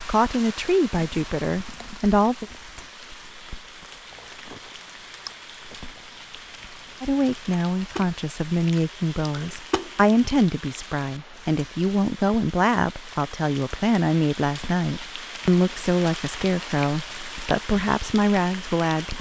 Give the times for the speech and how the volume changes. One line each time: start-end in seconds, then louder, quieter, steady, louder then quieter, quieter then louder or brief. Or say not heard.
0.0-2.5 brief
7.0-19.1 steady.